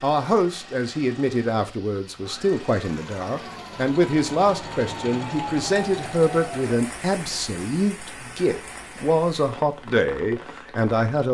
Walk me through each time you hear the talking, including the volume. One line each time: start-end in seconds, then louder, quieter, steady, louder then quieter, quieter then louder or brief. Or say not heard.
0.0-11.2 steady.